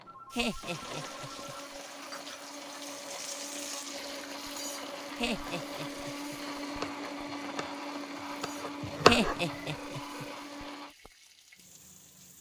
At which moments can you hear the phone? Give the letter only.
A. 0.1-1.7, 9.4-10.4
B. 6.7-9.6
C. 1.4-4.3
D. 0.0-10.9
A.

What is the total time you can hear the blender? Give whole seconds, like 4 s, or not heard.
11 s.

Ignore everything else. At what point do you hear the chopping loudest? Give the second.
9 s.